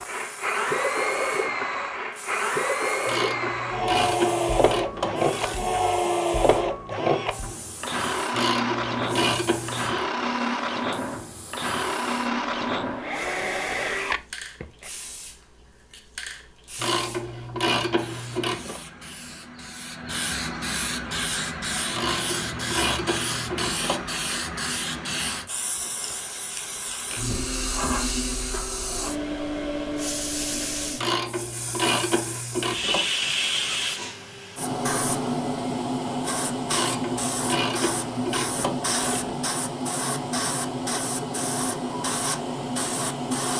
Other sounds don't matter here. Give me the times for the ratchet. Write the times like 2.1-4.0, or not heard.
3.0-5.7, 8.3-10.1, 16.8-18.8, 21.9-24.1, 30.9-33.0, 36.6-39.4.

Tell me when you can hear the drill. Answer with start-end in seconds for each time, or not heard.
0.0-14.9.